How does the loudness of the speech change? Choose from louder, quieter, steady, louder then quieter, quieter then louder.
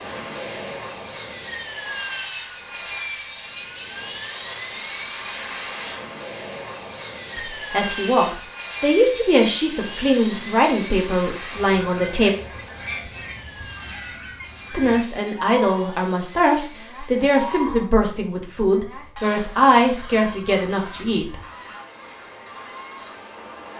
steady.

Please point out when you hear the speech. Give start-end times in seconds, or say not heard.
7.3-12.3, 14.7-21.4.